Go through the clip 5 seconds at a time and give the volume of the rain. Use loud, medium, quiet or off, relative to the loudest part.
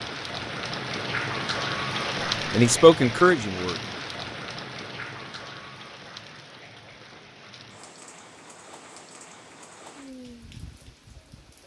loud, quiet, quiet.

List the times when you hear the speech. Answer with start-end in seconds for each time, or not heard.
2.5-3.8.